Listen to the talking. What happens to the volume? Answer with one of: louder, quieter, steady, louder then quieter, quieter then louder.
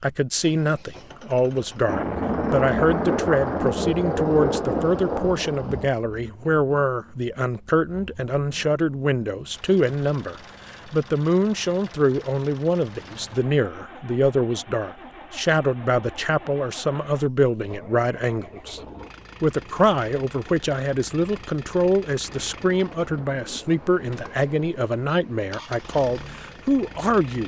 steady.